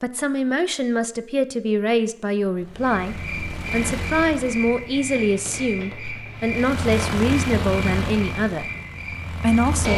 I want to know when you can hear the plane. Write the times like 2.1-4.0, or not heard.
2.5-5.0, 6.3-9.9.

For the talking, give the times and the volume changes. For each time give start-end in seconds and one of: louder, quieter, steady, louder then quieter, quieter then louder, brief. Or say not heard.
0.0-8.7 steady
9.3-9.9 brief.